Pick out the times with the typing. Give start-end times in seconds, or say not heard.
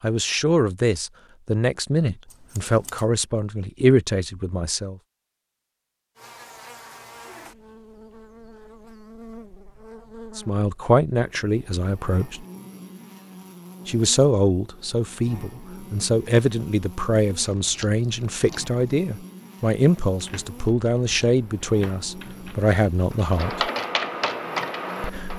20.1-25.3.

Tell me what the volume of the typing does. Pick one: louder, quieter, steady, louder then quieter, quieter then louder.
louder.